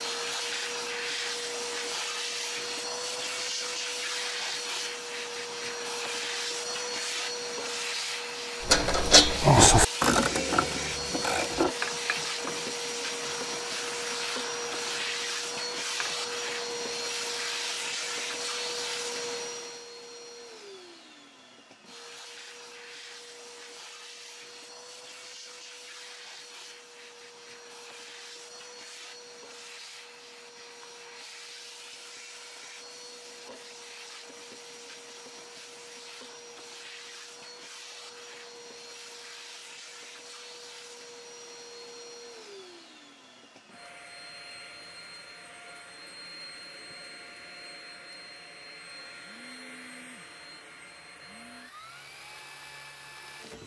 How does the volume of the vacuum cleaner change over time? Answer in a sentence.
The volume of the vacuum cleaner goes down.